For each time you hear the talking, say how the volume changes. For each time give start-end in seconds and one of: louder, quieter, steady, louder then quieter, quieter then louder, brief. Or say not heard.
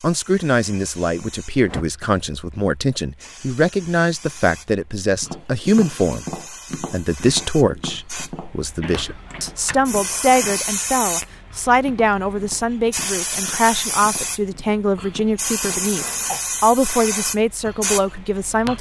0.0-18.7 steady.